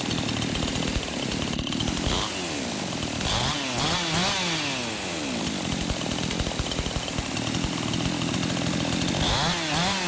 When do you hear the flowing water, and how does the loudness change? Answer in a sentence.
You can hear the flowing water from 0.0 to 10.0 s, at a steady volume.